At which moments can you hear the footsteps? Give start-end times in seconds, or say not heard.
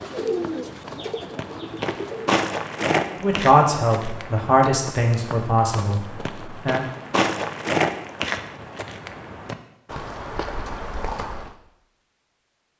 0.0-11.6.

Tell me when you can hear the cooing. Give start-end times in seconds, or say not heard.
0.0-2.4.